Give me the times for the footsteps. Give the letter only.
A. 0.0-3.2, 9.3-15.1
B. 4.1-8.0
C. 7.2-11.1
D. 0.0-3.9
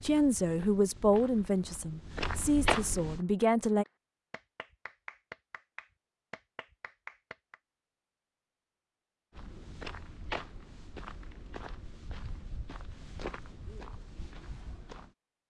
A.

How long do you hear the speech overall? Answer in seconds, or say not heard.
4 s.